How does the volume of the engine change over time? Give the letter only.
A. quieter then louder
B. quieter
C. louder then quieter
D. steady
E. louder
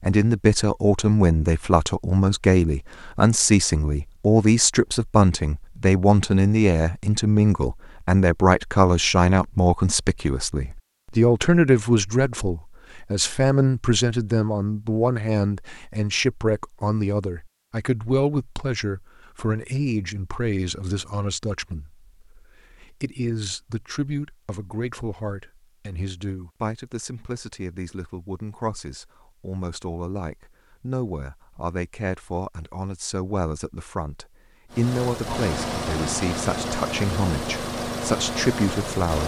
D.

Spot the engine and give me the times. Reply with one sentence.
The engine can be heard from 34.7 to 39.2 s.